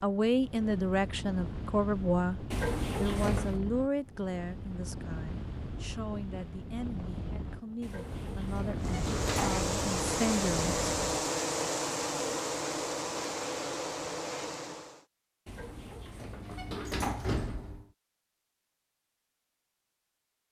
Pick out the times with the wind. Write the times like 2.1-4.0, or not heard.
0.0-11.1.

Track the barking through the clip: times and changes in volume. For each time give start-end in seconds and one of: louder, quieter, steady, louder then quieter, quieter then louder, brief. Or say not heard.
not heard.